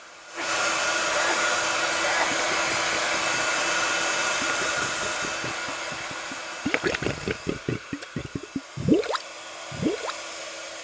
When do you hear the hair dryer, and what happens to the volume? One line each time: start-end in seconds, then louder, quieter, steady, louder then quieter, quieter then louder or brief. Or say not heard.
0.0-10.7 quieter.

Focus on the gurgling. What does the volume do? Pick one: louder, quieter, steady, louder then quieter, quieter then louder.
louder.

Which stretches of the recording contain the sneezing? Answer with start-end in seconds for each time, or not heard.
0.3-2.3.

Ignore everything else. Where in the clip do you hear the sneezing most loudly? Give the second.
2 s.